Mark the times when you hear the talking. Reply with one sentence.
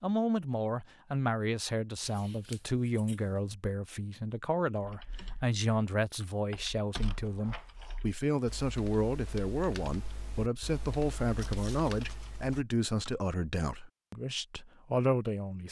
The talking can be heard from 0.0 to 15.6 s.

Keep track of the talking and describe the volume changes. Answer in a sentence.
The volume of the talking stays about the same.